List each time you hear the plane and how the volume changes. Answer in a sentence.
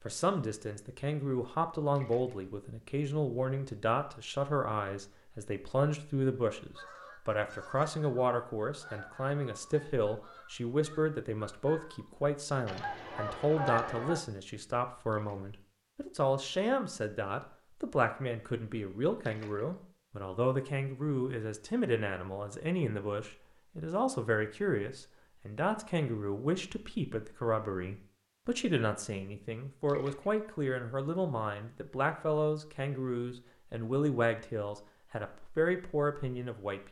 The plane can't be heard in this clip.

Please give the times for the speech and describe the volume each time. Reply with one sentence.
You can hear the speech from 0.0 to 36.8 s, at a steady volume.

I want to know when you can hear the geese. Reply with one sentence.
You can hear the geese from 6.5 to 14.2 s.